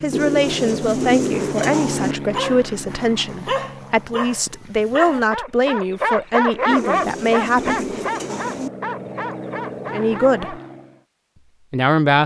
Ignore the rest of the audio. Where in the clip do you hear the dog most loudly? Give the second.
7 s.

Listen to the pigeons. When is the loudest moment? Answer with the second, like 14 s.
1 s.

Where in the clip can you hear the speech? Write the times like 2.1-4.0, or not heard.
0.0-8.0, 9.9-10.6, 11.7-12.2.